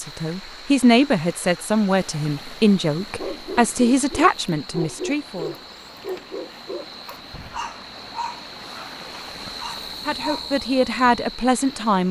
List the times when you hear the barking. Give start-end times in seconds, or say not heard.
3.1-10.6.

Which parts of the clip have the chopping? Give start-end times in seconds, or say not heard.
not heard.